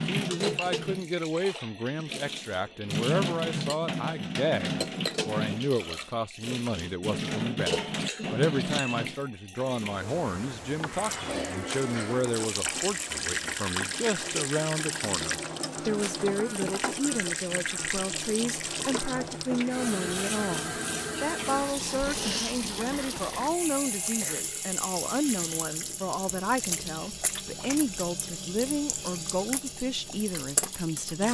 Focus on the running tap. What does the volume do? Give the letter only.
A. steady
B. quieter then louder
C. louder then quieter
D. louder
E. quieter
A.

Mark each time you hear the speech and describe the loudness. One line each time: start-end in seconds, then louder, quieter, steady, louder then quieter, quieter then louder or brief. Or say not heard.
0.0-31.2 steady.